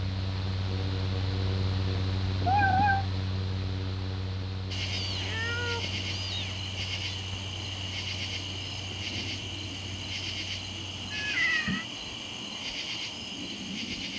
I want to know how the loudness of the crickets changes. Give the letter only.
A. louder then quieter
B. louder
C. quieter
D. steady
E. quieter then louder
D.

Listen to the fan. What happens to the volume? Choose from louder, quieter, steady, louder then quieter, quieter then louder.
quieter.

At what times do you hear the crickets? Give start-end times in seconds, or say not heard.
4.7-14.1.